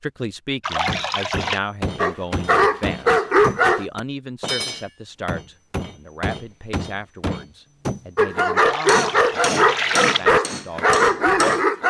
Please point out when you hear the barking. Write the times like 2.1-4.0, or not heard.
1.9-3.9, 8.2-11.8.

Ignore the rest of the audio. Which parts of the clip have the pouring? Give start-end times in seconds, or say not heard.
0.6-1.6, 8.6-10.3.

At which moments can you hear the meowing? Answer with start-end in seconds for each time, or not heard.
not heard.